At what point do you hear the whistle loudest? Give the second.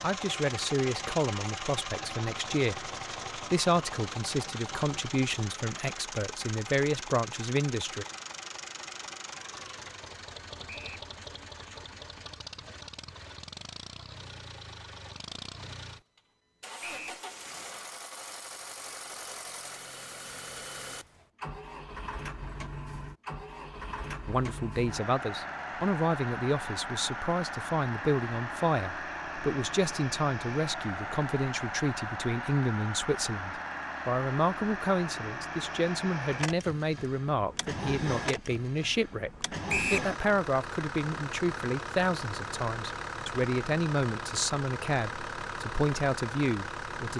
40 s.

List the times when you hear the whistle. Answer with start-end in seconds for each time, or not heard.
10.7-11.1, 16.8-17.2, 39.6-40.1.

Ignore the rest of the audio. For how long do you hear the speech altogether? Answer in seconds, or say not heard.
31 s.